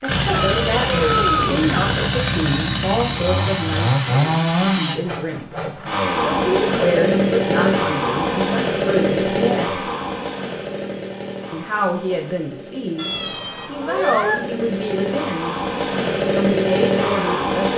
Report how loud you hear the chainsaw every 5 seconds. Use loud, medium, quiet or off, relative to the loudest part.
loud, loud, medium, loud.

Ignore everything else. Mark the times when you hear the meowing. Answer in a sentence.
The meowing can be heard from 0.3 to 1.9 s and from 12.9 to 14.4 s.